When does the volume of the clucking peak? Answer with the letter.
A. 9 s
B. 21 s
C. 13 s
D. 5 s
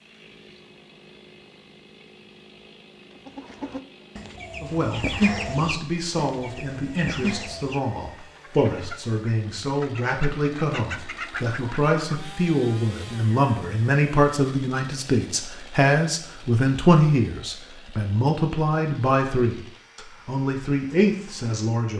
D.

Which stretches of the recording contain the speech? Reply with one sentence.
The speech can be heard from 4.6 to 21.9 s.